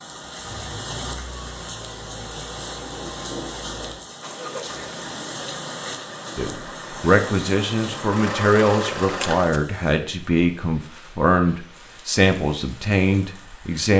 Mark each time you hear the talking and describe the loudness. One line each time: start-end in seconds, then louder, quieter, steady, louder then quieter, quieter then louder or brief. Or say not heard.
6.3-13.9 steady.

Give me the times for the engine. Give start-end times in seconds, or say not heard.
0.0-9.6.